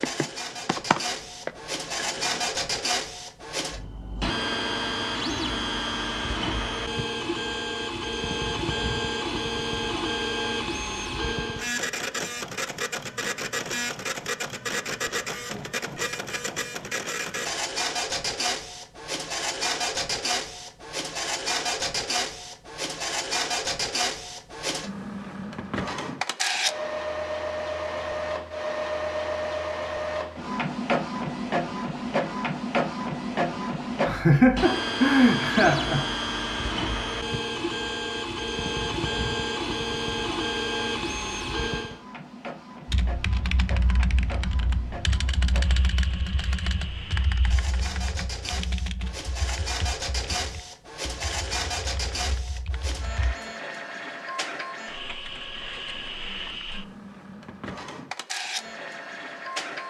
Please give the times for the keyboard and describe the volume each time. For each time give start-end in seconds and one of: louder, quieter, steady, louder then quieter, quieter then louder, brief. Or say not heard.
0.0-2.5 brief
42.9-53.4 quieter.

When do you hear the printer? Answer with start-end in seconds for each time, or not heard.
0.0-59.8.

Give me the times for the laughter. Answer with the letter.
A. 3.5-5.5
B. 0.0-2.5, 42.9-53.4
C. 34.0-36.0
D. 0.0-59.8
C.